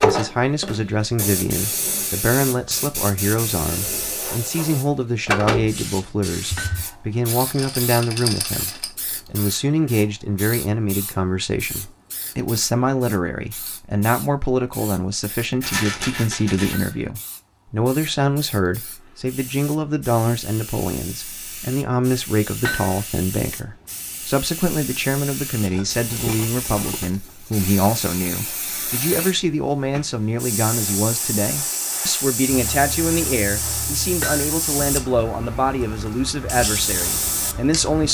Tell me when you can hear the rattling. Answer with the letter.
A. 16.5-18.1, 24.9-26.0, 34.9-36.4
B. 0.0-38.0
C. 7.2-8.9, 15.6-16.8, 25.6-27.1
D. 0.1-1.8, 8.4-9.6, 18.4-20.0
C.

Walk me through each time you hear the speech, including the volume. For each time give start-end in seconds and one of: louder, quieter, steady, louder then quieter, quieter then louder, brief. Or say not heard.
0.0-38.0 steady.